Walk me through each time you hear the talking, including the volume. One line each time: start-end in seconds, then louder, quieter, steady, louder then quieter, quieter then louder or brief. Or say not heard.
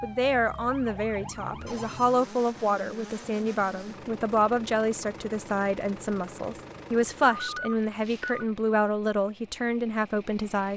0.0-10.7 steady.